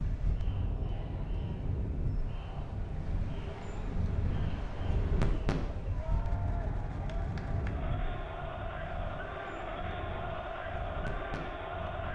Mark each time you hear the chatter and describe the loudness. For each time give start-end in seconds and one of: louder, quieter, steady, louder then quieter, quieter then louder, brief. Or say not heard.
0.0-12.1 louder.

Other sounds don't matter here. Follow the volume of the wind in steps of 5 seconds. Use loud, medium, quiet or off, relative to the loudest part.
loud, loud, medium.